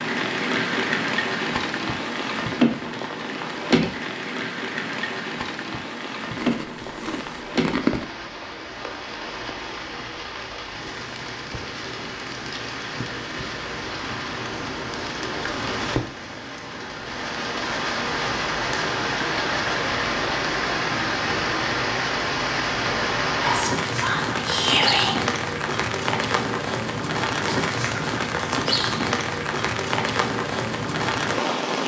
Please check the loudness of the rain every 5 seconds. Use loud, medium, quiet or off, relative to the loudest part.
loud, medium, medium, loud, loud, loud, loud.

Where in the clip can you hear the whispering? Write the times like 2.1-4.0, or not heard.
23.4-25.2.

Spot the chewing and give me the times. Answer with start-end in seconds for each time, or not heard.
6.3-8.1.